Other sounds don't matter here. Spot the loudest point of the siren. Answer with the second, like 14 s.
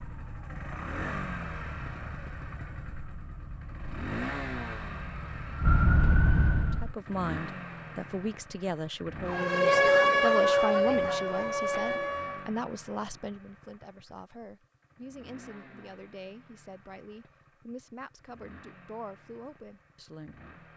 10 s.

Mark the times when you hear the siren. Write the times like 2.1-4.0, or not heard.
0.0-7.0, 9.2-12.5.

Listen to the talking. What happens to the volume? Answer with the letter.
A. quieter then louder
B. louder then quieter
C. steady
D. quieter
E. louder
D.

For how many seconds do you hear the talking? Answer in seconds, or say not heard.
14 s.